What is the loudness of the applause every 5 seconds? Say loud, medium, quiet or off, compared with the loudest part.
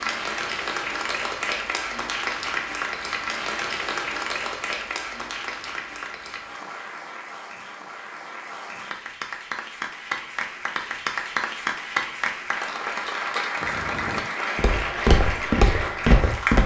loud, medium, loud, loud.